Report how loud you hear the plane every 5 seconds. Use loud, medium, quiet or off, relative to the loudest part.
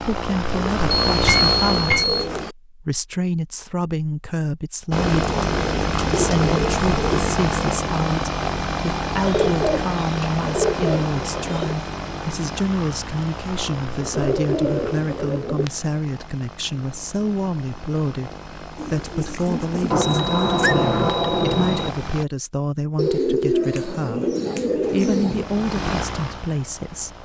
loud, loud, medium, quiet, medium, medium.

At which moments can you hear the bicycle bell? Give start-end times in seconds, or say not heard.
1.1-2.2, 19.9-21.9.